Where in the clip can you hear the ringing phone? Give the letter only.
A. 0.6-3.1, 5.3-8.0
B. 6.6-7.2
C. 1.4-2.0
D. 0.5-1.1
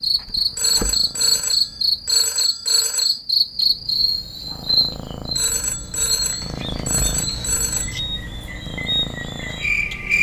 A.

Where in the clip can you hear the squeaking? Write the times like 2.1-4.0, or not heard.
6.6-7.2.